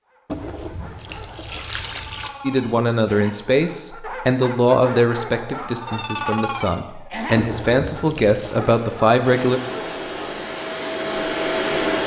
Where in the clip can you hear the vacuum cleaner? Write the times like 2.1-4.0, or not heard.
9.2-12.0.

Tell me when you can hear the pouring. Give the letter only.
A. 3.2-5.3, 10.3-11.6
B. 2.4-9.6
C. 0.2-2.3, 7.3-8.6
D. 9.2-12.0
C.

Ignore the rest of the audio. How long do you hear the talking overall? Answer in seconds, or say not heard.
7 s.